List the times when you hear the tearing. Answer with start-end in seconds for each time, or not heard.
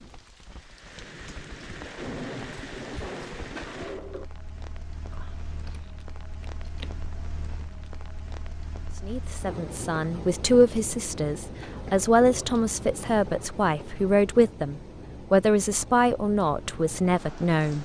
not heard.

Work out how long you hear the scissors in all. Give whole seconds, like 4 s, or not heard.
2 s.